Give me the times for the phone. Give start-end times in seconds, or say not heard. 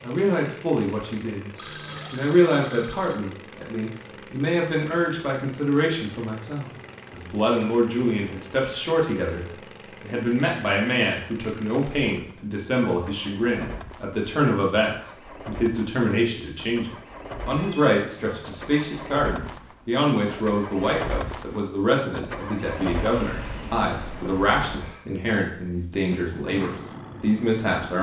1.6-3.2, 17.4-18.7.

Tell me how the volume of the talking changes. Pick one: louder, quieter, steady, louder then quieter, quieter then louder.
steady.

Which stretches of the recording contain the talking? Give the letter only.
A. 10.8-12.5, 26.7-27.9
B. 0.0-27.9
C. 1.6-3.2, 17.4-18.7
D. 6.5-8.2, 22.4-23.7
B.